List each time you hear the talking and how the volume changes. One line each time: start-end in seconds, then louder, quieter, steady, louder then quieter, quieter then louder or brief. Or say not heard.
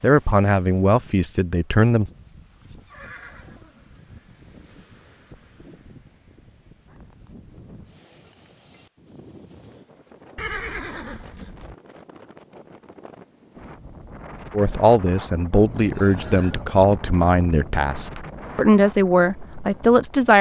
0.0-2.1 brief
14.5-20.3 steady.